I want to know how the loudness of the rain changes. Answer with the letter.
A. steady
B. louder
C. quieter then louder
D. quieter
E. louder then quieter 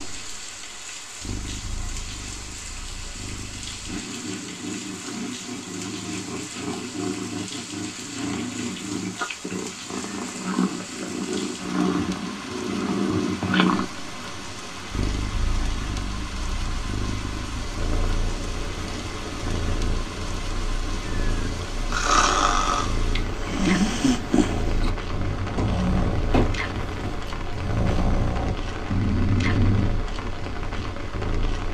A.